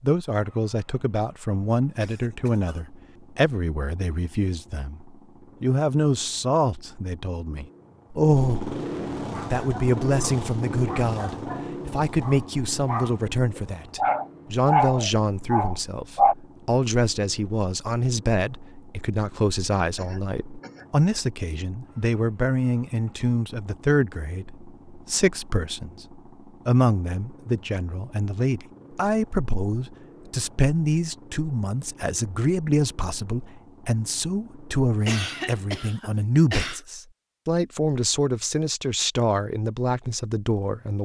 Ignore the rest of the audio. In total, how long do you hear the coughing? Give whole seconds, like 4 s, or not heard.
4 s.